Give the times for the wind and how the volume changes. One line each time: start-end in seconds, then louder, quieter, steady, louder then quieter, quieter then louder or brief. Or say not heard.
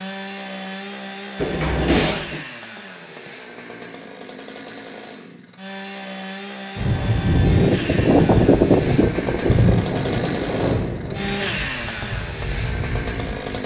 6.8-13.6 quieter.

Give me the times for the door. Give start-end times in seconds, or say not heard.
1.4-2.5.